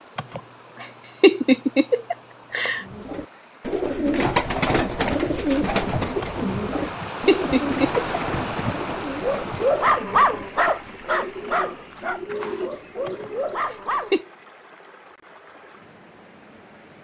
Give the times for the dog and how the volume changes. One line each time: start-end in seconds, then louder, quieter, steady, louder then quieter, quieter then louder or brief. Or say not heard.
9.2-14.2 quieter then louder.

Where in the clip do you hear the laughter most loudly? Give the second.
1 s.